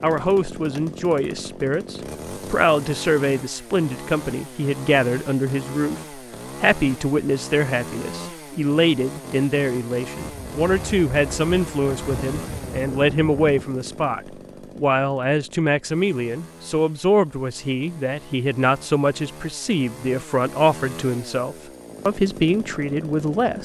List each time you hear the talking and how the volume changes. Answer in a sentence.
You can hear the talking from 0.0 to 23.5 s, at a steady volume.